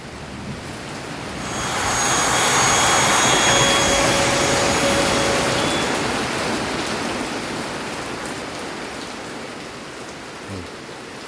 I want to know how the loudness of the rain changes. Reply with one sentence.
The loudness of the rain goes up, then down.